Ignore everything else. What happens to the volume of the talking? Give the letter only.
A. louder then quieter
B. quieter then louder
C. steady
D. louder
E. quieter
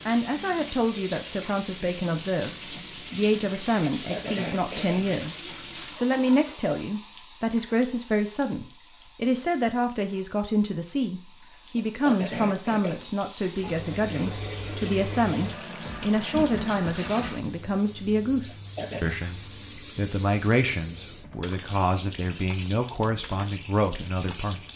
C.